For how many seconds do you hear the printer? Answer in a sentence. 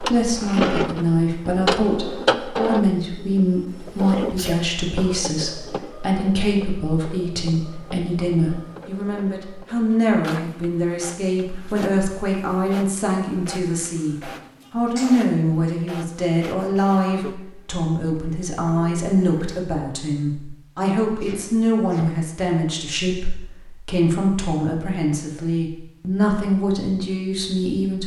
The printer can be heard for 20 seconds in total.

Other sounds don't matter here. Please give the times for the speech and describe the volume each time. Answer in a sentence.
You can hear the speech from 0.0 to 28.0 s, at a steady volume.